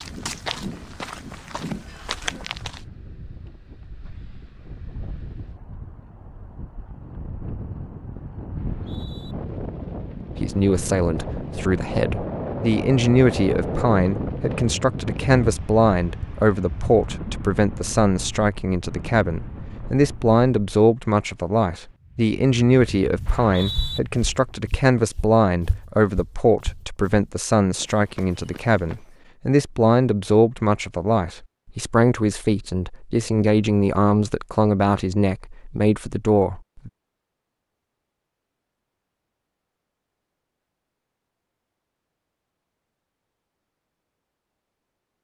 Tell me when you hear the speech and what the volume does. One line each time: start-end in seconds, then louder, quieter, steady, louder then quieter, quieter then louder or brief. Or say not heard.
10.4-36.9 steady.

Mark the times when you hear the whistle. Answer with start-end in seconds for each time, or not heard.
8.6-9.3, 23.2-24.0.